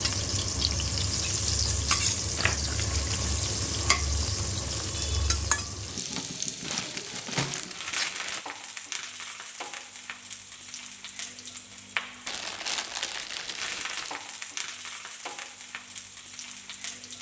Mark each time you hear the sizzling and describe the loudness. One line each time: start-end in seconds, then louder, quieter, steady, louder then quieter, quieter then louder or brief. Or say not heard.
0.0-17.1 quieter.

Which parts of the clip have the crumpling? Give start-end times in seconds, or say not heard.
2.4-3.2, 6.6-8.4, 12.2-14.2.